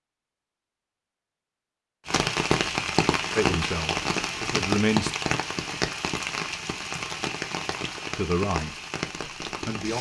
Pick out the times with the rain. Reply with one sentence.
The rain can be heard from 2.0 to 9.9 s.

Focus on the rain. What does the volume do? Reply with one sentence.
The volume of the rain goes down.